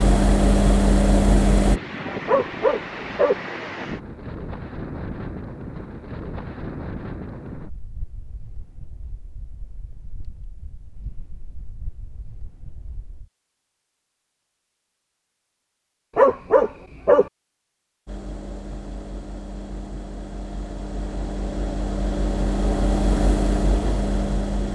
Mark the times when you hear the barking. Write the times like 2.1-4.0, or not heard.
2.2-3.4, 16.1-17.3.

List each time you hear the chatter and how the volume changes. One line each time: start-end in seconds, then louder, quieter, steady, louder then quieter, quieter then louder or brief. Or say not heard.
not heard.